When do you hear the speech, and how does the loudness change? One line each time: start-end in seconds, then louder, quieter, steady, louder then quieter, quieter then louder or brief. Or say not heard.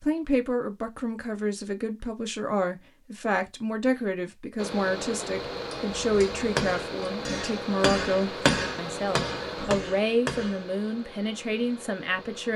0.0-12.5 steady.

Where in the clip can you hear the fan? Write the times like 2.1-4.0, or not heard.
4.5-12.5.